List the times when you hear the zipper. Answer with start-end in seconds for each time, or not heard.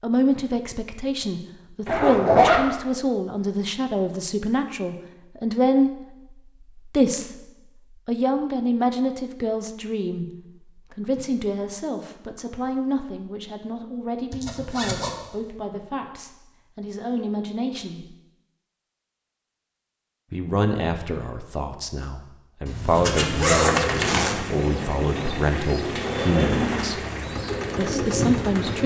1.9-2.6, 14.3-15.3, 22.6-24.4.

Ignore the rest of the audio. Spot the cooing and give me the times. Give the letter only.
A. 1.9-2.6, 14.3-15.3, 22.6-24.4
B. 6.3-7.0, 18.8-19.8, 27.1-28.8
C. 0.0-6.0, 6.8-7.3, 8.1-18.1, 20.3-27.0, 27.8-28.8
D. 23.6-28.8
D.